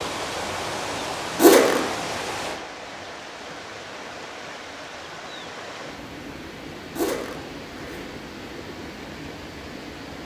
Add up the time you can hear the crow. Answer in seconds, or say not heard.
not heard.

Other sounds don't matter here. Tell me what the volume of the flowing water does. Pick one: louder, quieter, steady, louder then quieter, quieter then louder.
quieter.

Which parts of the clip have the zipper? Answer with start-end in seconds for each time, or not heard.
1.4-1.8, 7.0-8.1.